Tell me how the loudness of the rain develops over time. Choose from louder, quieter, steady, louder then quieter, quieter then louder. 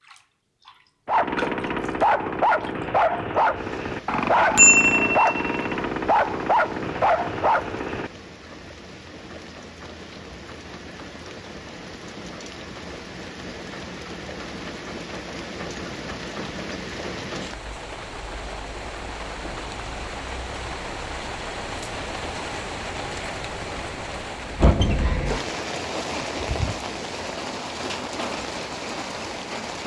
louder.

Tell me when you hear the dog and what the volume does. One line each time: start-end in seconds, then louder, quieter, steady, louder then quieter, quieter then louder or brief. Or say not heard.
1.1-8.1 steady.